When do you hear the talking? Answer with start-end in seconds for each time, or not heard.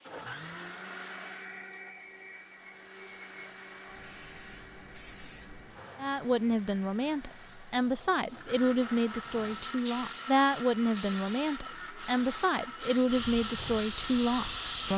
6.0-14.9.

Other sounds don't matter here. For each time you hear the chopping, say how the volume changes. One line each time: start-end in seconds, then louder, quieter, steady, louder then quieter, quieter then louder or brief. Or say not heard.
not heard.